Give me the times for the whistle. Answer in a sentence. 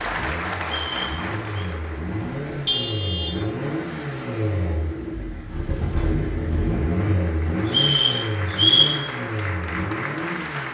The whistle can be heard from 0.6 to 1.6 s and from 7.7 to 8.9 s.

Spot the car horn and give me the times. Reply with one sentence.
You can hear the car horn from 2.2 to 3.4 s.